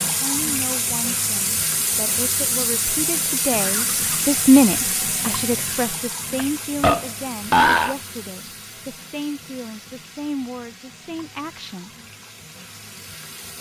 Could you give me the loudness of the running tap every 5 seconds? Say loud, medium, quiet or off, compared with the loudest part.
loud, medium, quiet.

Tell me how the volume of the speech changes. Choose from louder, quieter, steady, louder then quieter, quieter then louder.
louder then quieter.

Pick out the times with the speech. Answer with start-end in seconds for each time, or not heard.
0.0-12.0.